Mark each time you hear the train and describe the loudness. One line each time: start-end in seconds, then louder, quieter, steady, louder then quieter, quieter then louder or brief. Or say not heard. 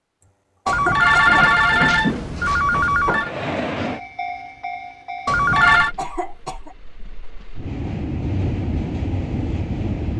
3.2-10.1 quieter then louder.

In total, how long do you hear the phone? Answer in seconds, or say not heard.
3 s.